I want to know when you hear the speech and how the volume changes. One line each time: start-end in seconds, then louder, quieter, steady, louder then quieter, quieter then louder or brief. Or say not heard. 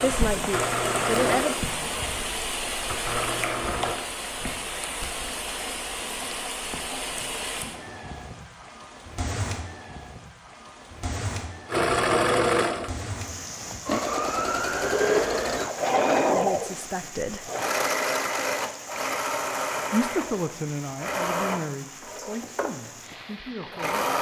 0.0-1.6 brief
16.2-17.5 brief
19.9-24.1 quieter.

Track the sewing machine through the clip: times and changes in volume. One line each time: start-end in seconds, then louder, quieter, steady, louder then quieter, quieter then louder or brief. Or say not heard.
0.0-4.0 quieter then louder
11.7-24.1 quieter.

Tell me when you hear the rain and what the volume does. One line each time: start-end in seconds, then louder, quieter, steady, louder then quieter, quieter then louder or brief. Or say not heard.
0.0-24.0 quieter.